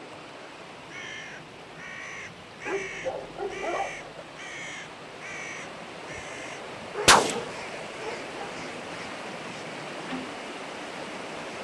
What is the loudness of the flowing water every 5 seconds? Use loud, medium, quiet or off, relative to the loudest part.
medium, loud, loud.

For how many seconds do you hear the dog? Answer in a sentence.
The dog can be heard for 3 seconds in total.